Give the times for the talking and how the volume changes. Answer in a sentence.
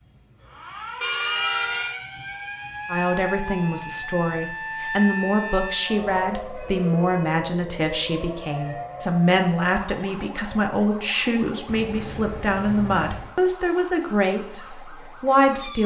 The talking can be heard from 2.9 to 15.8 s, at a steady volume.